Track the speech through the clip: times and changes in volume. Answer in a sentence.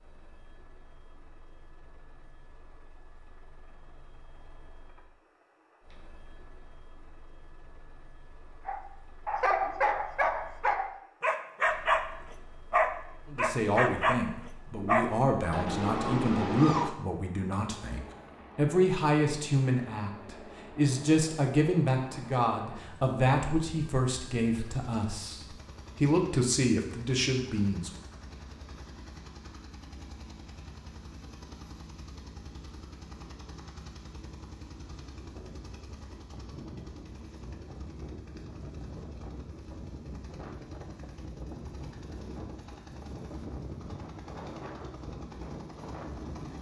You can hear the speech from 13.3 to 27.9 s, at a steady volume.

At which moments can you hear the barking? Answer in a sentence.
The barking can be heard from 8.7 to 12.1 s, from 12.7 to 14.2 s and from 14.8 to 16.9 s.